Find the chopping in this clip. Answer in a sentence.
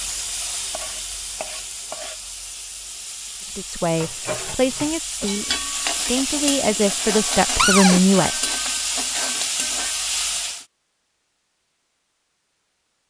The chopping can't be heard in this clip.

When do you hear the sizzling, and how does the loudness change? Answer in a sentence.
You can hear the sizzling from 0.0 to 10.7 s, getting louder.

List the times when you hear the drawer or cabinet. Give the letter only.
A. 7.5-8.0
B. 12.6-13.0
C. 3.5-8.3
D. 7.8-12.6
A.